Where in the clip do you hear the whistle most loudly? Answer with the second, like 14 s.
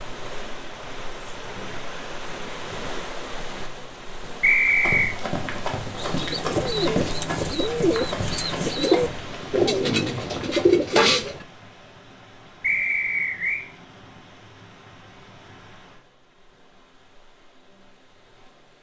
5 s.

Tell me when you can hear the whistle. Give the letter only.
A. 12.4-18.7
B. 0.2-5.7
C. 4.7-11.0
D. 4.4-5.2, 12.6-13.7
D.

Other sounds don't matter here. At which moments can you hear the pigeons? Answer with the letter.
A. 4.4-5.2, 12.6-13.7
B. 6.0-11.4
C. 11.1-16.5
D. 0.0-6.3
B.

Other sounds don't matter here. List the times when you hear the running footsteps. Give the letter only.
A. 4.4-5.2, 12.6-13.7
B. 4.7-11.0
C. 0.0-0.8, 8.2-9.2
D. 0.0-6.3
B.